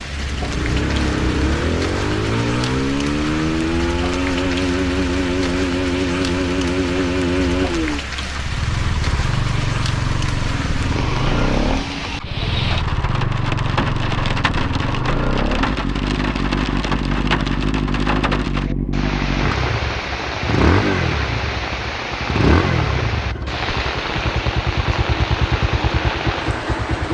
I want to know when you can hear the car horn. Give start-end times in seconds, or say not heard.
not heard.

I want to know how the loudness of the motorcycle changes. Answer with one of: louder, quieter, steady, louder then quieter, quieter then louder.
steady.